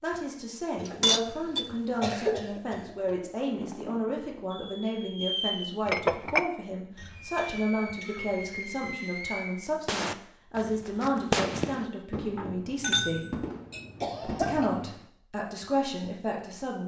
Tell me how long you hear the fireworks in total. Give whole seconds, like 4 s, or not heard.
10 s.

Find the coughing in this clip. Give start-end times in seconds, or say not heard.
0.8-3.3, 7.0-8.4, 14.0-14.7.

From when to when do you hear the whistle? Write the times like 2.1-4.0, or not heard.
not heard.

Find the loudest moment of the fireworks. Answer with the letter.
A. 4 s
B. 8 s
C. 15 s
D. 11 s
D.